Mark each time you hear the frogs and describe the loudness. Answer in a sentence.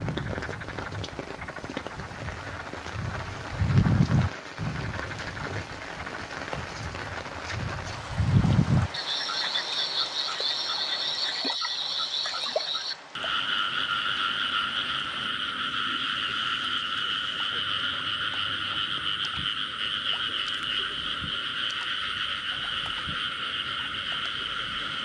The frogs can be heard from 0.0 to 25.0 s, at a steady volume.